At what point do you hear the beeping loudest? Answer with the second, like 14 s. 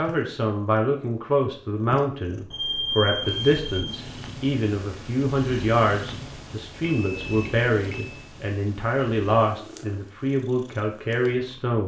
3 s.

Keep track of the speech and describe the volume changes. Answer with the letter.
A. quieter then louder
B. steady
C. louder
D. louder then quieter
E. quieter
B.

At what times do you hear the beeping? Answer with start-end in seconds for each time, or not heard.
2.5-4.0, 6.8-8.2.